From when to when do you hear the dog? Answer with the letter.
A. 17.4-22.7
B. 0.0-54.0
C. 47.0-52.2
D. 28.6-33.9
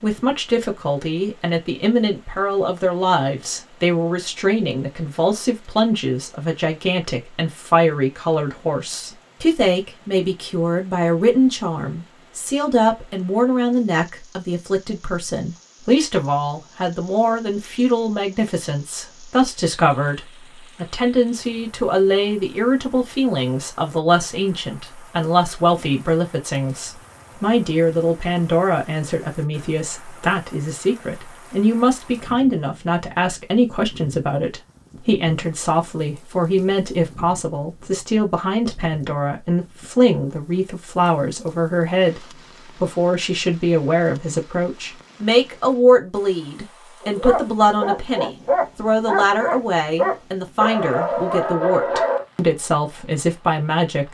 C.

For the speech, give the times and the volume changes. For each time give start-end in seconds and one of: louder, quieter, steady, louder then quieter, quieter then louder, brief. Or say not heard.
0.0-54.0 steady.